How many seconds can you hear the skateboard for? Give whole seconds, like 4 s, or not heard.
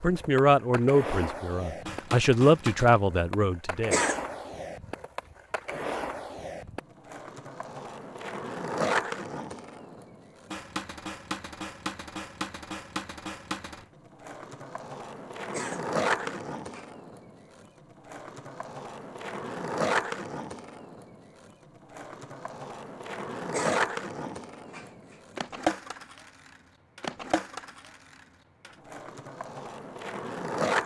31 s.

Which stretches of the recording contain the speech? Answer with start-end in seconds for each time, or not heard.
0.0-4.0.